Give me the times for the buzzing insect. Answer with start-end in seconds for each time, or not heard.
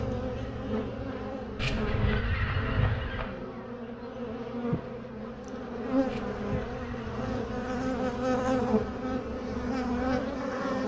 0.0-10.8.